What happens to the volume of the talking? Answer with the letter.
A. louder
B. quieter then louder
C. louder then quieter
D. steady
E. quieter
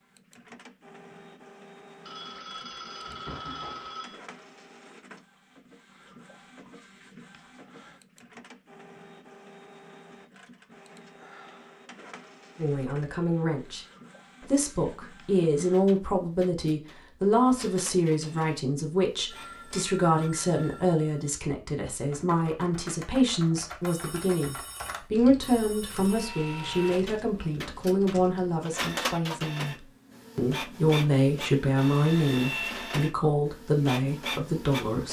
D.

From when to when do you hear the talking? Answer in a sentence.
The talking can be heard from 12.6 to 35.0 s.